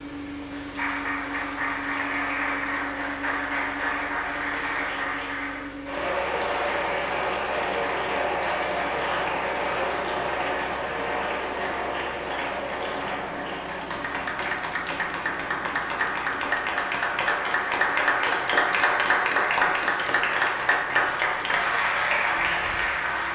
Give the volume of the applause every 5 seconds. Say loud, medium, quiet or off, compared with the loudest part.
medium, loud, medium, loud, loud.